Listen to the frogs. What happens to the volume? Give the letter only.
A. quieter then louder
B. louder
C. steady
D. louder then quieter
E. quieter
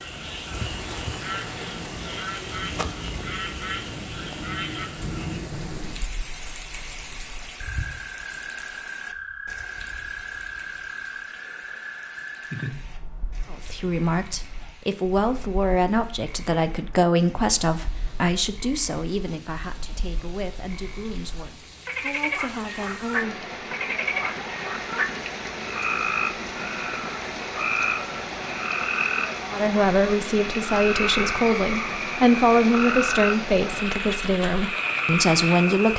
A.